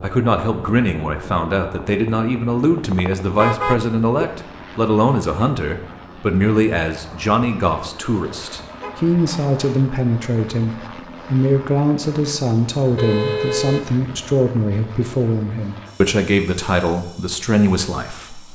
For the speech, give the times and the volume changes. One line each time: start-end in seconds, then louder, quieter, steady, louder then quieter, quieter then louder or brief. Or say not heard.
0.0-18.4 steady.